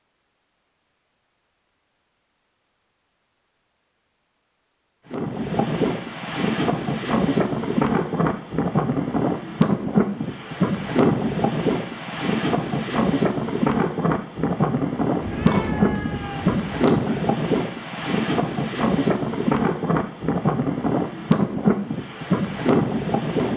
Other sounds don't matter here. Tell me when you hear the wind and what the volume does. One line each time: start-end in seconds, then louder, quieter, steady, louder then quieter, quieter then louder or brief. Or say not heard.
5.1-23.5 steady.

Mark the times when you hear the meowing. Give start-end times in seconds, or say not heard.
15.2-17.1.